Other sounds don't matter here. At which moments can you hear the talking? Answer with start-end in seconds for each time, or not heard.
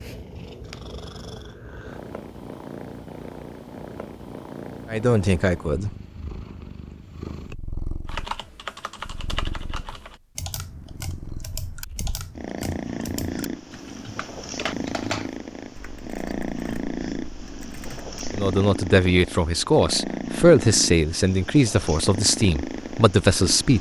4.9-5.9, 18.3-23.7.